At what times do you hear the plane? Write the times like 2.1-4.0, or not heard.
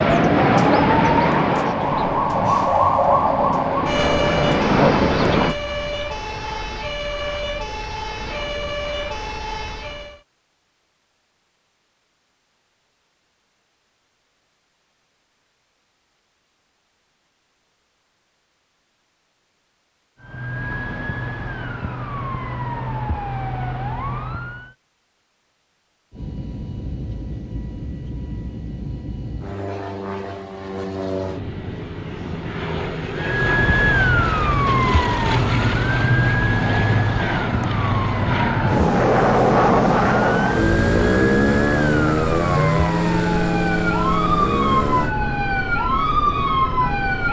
0.0-5.5, 26.1-45.1.